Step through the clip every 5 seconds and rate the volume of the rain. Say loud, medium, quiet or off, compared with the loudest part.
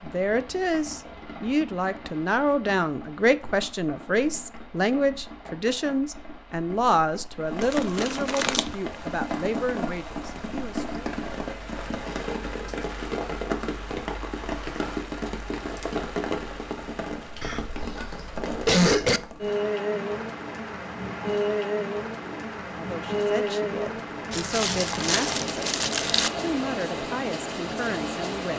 quiet, medium, loud, loud, loud, loud.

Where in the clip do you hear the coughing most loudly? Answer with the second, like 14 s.
19 s.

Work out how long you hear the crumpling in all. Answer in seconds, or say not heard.
3 s.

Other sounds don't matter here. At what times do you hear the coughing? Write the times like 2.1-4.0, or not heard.
17.4-19.2.